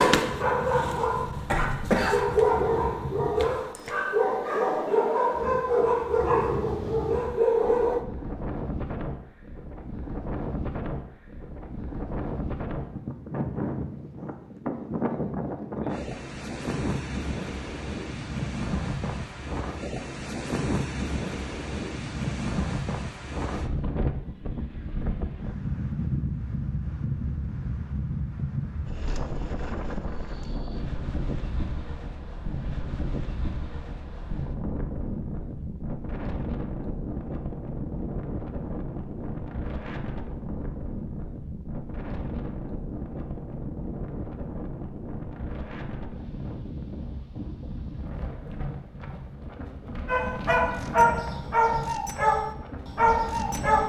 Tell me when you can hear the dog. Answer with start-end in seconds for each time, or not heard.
0.0-8.1, 50.0-53.8.